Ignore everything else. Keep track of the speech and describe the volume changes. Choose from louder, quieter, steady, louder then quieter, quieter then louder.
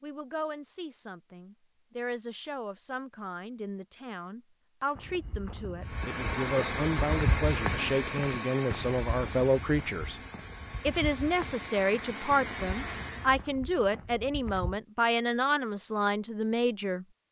louder.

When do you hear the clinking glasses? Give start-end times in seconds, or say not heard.
not heard.